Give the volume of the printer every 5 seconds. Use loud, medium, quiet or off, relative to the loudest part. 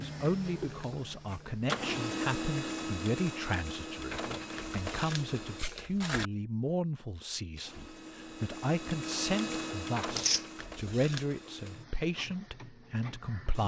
loud, loud, medium.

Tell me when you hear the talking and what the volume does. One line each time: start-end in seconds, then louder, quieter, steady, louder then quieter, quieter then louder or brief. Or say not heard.
0.0-13.6 steady.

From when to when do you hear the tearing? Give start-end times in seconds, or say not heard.
10.0-10.4.